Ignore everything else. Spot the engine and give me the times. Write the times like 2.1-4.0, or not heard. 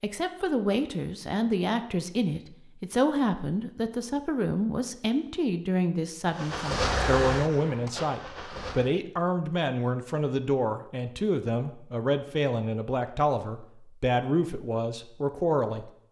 6.3-8.9.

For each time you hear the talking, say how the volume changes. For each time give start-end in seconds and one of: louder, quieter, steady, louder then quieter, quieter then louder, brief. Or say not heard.
0.0-15.9 steady.